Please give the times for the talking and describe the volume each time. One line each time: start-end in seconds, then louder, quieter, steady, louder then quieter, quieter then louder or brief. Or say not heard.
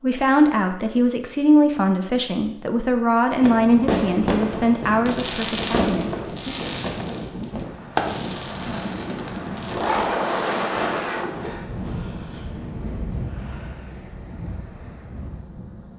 0.0-6.5 quieter.